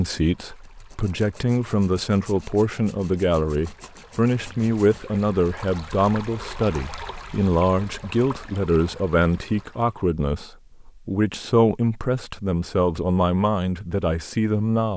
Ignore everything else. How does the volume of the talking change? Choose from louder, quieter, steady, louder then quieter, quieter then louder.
steady.